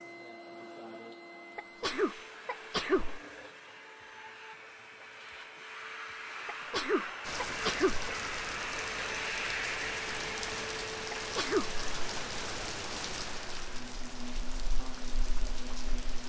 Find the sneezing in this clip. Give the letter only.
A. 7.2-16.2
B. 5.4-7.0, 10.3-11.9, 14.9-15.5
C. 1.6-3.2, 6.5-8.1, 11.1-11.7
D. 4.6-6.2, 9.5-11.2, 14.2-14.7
C.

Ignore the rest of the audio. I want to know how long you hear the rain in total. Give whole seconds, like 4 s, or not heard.
9 s.